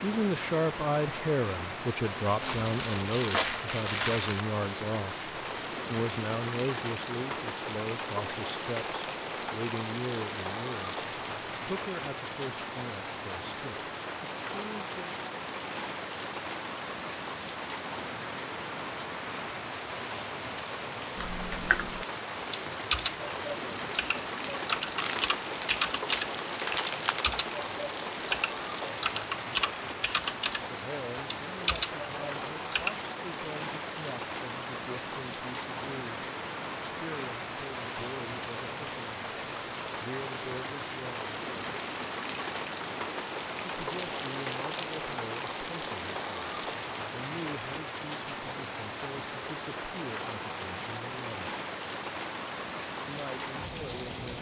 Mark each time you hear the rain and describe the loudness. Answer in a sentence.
You can hear the rain from 0.0 to 54.3 s, at a steady volume.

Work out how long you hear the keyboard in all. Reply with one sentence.
You can hear the keyboard for 11 seconds altogether.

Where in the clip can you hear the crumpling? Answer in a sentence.
You can hear the crumpling from 2.4 to 4.5 s, from 24.9 to 27.2 s and from 43.9 to 45.0 s.